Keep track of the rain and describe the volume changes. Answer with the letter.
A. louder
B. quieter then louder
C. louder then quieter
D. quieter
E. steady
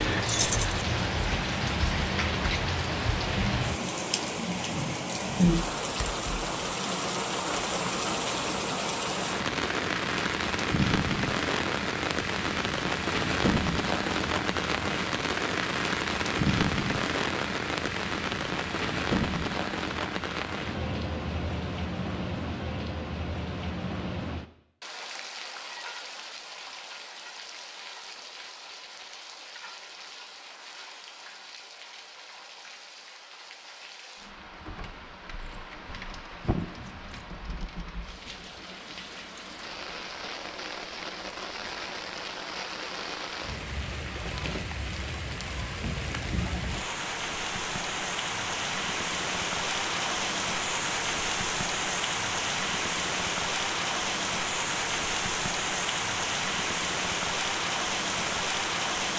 B.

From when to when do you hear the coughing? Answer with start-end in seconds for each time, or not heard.
not heard.